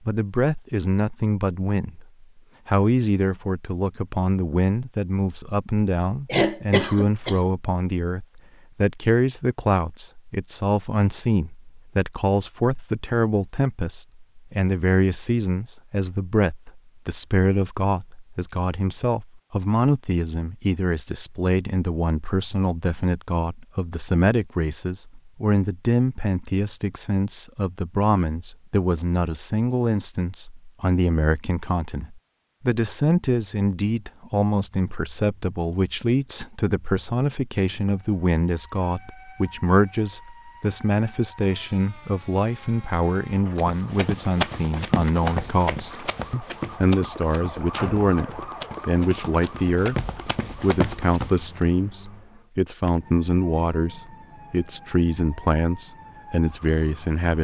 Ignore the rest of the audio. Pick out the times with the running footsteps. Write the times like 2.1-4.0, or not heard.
43.5-51.6.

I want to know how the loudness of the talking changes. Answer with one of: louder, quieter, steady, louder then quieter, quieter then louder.
steady.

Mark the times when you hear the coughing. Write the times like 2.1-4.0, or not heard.
6.2-7.4.